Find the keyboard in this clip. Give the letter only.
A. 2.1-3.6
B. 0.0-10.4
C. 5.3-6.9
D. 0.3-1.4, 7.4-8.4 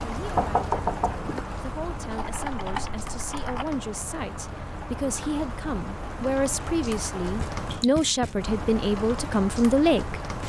A.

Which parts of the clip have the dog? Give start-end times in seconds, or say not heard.
not heard.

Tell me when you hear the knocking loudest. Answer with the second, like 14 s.
1 s.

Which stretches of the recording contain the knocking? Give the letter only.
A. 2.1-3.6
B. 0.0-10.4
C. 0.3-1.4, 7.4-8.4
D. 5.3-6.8
C.